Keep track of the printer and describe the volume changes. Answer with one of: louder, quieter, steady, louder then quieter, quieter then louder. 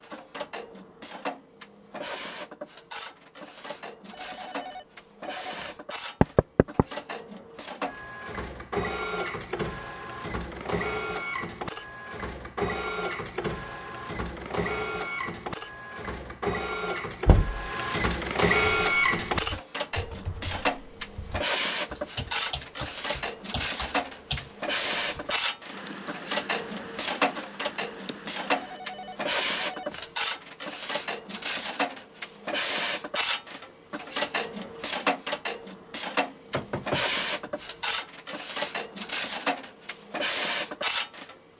louder.